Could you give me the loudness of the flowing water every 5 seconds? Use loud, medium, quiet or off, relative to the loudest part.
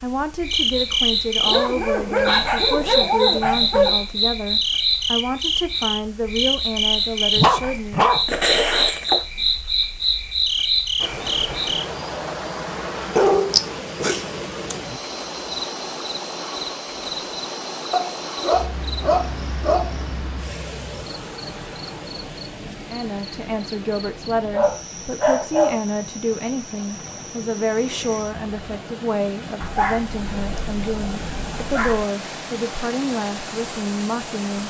off, off, loud, loud, medium, medium, loud.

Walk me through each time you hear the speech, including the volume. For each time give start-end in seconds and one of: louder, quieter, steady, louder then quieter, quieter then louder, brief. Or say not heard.
0.0-8.1 steady
22.9-34.6 steady.